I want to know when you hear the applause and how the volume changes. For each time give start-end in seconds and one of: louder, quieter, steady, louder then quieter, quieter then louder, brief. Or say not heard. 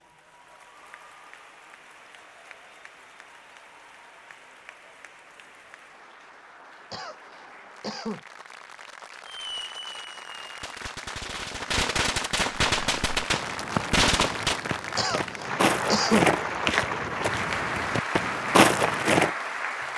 0.0-19.9 louder.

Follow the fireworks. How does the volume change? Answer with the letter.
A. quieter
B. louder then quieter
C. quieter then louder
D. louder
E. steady
D.